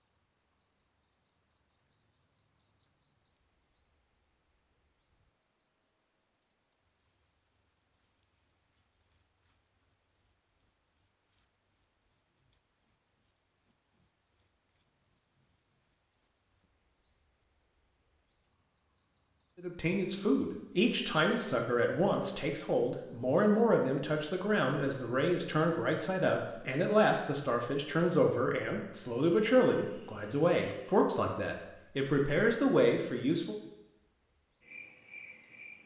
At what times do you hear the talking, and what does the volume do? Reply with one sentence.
You can hear the talking from 19.6 to 33.5 s, at a steady volume.